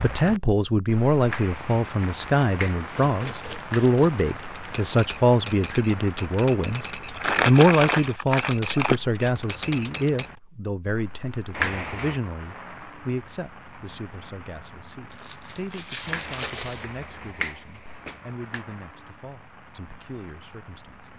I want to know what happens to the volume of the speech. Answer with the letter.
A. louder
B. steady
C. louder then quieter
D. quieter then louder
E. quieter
E.